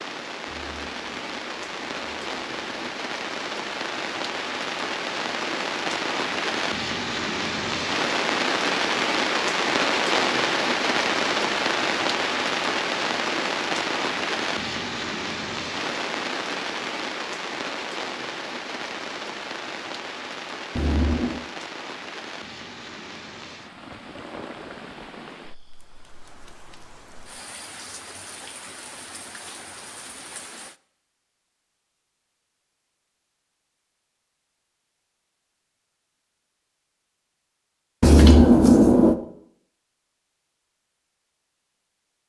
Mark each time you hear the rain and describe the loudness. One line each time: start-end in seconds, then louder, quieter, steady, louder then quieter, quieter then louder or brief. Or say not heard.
0.0-30.8 louder then quieter.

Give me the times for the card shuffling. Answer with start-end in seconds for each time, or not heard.
0.5-2.9, 20.8-21.4, 38.0-39.1.